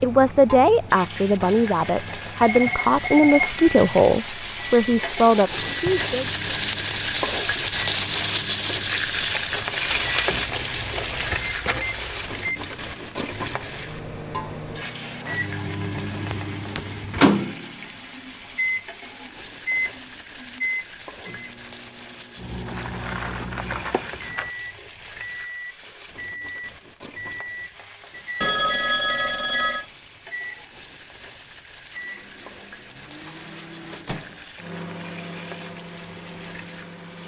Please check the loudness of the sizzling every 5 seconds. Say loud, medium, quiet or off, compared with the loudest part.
medium, loud, medium, quiet, quiet, quiet, quiet, quiet.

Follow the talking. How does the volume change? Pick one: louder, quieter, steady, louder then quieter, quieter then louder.
steady.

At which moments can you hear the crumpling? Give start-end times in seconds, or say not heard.
9.9-12.3, 22.6-24.5.